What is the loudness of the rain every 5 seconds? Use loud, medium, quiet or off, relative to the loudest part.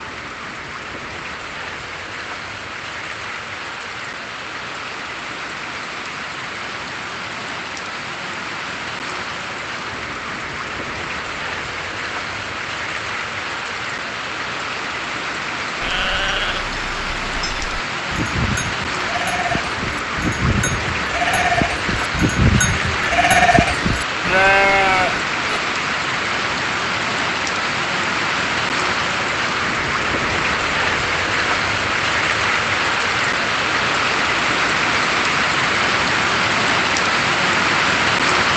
quiet, medium, medium, medium, medium, loud, loud, loud.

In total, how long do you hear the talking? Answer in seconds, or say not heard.
not heard.